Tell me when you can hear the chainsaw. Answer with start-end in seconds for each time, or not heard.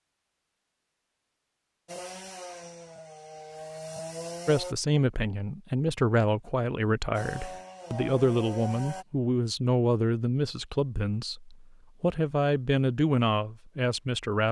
1.9-4.8, 7.1-9.1.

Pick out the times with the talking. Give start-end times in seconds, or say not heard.
4.5-14.4.